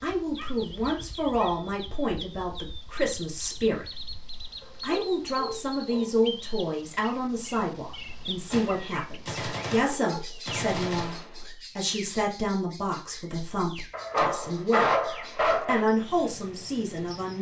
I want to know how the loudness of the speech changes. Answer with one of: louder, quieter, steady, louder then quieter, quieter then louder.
steady.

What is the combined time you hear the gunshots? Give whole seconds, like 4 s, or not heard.
3 s.